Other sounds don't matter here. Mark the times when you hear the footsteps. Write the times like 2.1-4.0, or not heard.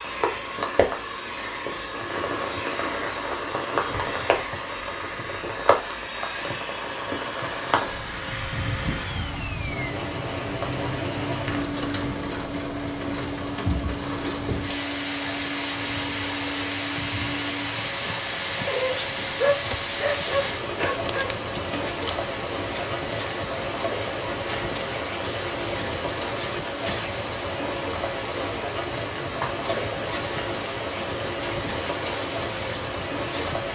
not heard.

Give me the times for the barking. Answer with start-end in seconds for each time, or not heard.
18.6-21.4.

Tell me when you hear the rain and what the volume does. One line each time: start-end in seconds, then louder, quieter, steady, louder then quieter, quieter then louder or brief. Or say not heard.
0.0-33.6 steady.